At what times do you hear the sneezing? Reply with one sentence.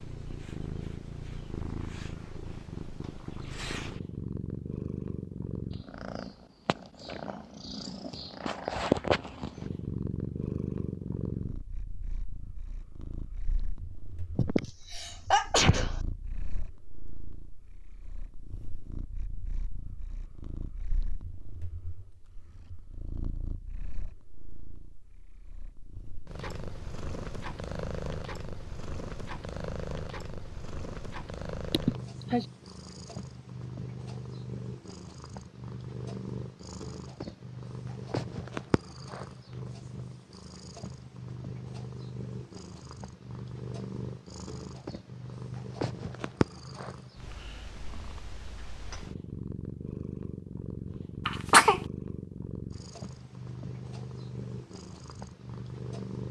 You can hear the sneezing from 14.3 to 16.0 s, from 31.7 to 32.5 s and from 51.2 to 51.8 s.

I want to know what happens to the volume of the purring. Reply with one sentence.
The loudness of the purring goes down, then up.